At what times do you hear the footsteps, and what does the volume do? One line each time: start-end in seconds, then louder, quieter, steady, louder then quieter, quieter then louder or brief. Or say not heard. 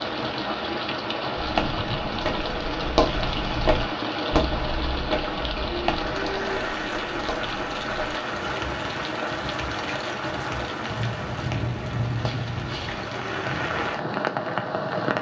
1.4-13.1 quieter.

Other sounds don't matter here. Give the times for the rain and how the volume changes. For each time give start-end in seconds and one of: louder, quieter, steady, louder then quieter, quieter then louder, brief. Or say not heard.
0.0-15.1 steady.